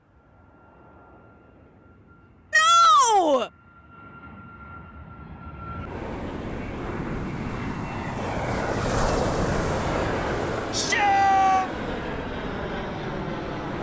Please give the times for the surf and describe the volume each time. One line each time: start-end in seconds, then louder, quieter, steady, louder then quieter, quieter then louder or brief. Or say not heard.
5.7-13.7 louder then quieter.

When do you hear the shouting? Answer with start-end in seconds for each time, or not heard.
2.5-3.5, 10.7-11.7.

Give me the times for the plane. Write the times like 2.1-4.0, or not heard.
0.0-13.7.